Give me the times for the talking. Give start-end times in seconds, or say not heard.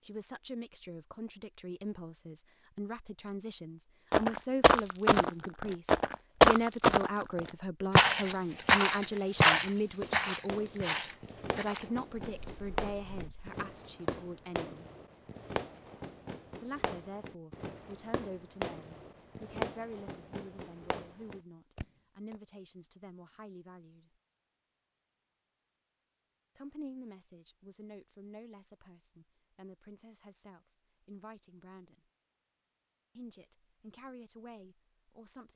0.0-14.8, 16.6-24.1, 26.6-32.0, 33.1-35.5.